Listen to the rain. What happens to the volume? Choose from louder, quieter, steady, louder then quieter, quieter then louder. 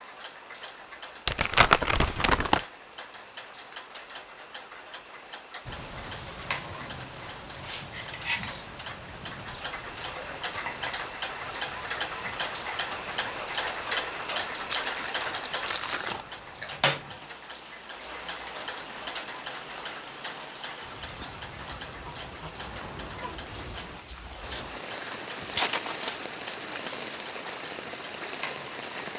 quieter then louder.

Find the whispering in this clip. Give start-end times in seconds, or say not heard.
not heard.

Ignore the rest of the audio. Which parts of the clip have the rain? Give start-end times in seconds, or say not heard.
5.7-29.1.